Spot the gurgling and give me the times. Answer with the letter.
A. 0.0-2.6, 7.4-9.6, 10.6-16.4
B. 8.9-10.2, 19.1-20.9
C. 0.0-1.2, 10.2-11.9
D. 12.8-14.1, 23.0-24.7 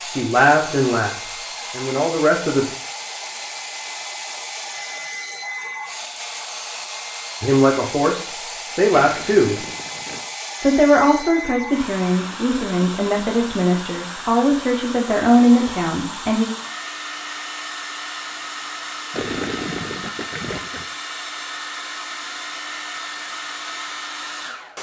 B.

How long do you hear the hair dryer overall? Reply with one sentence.
The hair dryer can be heard for 25 seconds in total.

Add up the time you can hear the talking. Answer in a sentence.
The talking can be heard for 11 seconds in total.